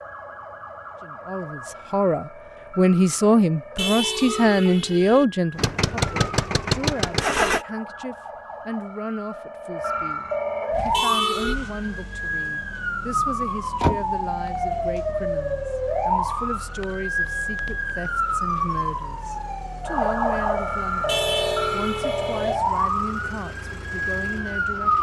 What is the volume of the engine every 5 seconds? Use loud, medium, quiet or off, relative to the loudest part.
off, loud, quiet, quiet, quiet.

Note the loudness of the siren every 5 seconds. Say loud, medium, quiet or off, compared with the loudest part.
quiet, medium, loud, loud, loud.